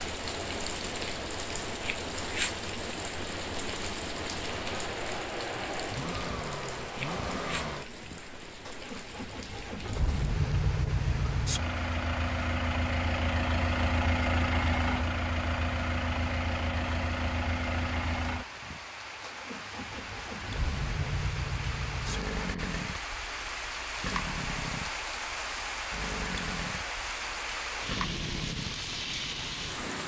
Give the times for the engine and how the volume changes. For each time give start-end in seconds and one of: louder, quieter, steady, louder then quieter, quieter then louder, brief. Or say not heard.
0.0-30.0 louder then quieter.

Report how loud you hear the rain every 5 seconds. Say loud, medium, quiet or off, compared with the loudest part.
loud, medium, medium, medium, loud, loud.